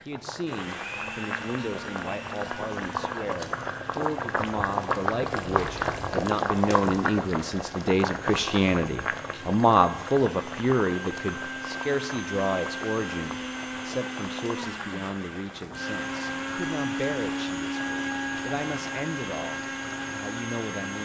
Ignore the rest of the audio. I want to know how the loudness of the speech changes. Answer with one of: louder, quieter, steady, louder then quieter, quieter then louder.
louder then quieter.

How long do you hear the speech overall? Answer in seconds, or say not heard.
21 s.